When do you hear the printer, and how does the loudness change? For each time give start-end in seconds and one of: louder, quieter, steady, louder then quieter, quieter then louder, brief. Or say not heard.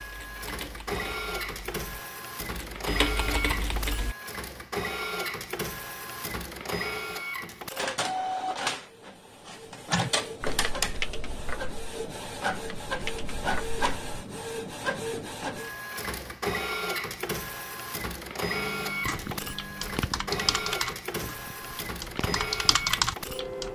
0.0-23.6 steady.